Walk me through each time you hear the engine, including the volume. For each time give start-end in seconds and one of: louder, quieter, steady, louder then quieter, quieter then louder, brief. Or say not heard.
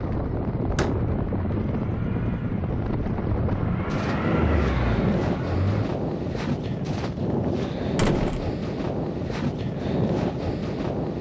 0.1-5.9 louder.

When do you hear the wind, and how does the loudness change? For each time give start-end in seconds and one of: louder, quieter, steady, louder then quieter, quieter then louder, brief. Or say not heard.
0.0-11.1 steady.